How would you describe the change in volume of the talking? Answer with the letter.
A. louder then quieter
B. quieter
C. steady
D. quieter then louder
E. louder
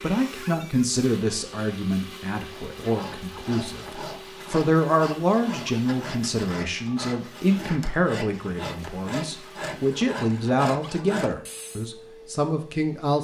C.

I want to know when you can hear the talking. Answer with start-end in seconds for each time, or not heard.
0.0-13.1.